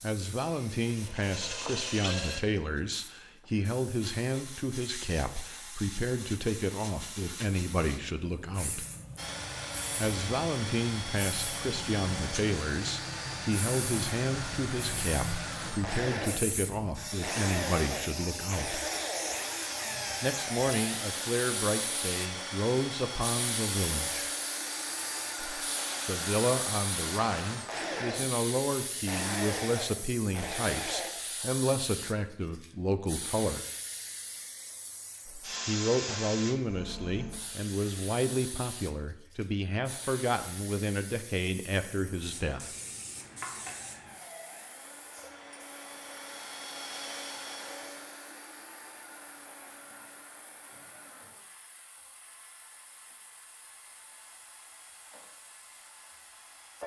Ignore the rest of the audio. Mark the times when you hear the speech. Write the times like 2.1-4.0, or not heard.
0.0-8.8, 9.9-18.8, 20.2-24.3, 26.1-33.6, 35.6-42.8.